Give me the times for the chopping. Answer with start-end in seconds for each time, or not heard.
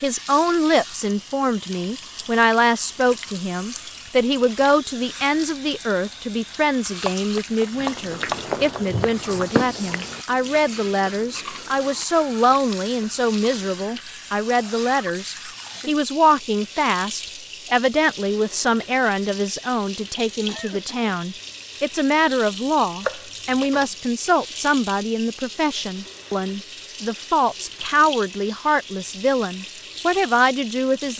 6.8-8.8, 23.0-23.9.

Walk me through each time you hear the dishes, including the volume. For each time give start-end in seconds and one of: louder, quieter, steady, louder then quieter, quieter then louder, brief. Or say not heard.
not heard.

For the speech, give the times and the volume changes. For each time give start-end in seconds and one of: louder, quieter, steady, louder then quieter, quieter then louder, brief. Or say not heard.
0.0-31.1 steady.